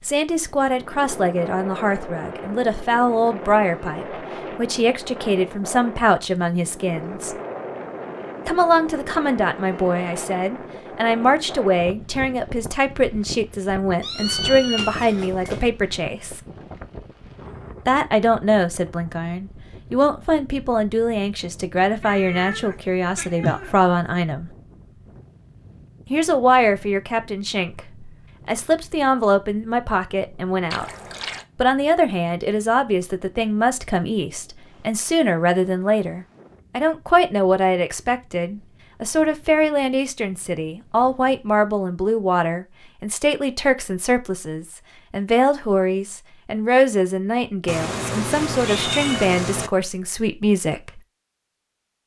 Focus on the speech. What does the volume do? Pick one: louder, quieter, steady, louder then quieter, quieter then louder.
steady.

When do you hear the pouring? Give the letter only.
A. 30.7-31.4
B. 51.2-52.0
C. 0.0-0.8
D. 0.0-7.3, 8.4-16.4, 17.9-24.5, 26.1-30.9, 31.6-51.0
A.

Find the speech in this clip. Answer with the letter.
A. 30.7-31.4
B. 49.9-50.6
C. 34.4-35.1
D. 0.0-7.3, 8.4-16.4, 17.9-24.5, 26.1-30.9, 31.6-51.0
D.